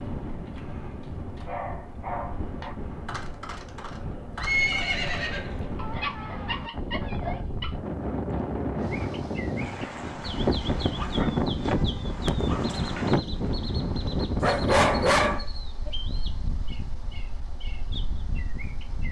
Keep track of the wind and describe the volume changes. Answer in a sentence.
The volume of the wind goes up, then down.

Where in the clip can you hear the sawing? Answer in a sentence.
You can't hear the sawing here.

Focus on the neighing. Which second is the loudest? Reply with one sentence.
The loudest moment of the neighing is at 5 seconds.